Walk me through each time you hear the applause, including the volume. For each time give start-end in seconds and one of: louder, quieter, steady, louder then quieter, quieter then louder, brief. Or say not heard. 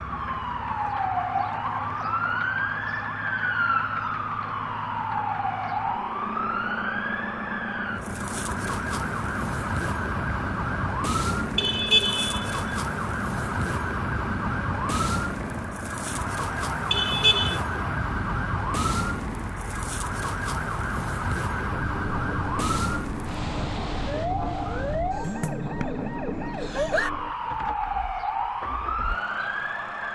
not heard.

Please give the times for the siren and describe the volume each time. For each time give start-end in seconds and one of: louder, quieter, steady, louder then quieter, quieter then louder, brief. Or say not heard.
0.0-30.1 steady.